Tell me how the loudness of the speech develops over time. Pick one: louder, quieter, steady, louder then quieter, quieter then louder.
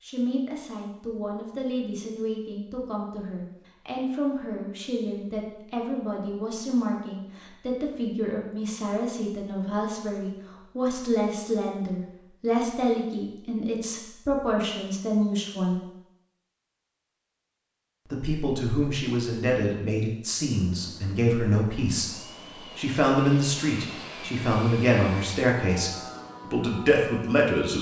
louder.